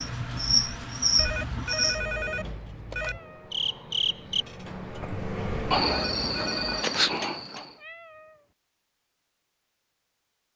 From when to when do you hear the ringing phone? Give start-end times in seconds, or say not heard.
1.1-3.2, 5.8-6.8.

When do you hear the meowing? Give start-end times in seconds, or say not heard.
2.9-3.6, 7.8-8.4.